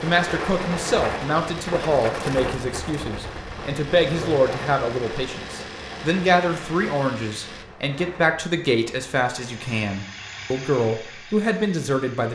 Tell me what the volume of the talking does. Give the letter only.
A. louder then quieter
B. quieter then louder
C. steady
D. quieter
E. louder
C.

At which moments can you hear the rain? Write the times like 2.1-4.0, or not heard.
0.0-9.8.